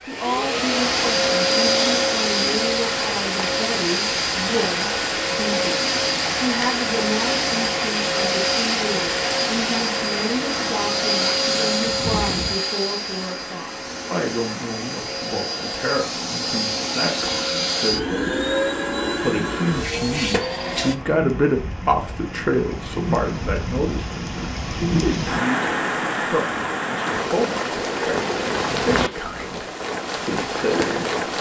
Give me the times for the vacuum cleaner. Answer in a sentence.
The vacuum cleaner can be heard from 0.0 to 20.9 s.